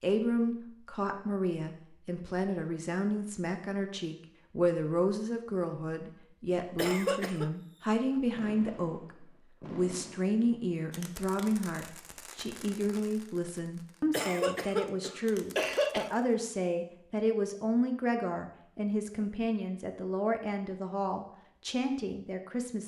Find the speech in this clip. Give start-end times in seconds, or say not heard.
0.0-22.8.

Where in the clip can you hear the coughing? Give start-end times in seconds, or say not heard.
6.8-7.5, 14.1-16.1.